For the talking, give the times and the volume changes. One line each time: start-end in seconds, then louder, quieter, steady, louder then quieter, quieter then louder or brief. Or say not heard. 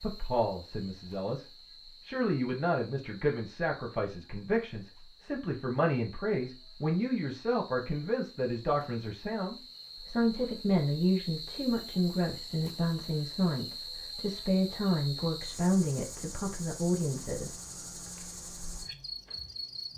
0.0-17.6 steady.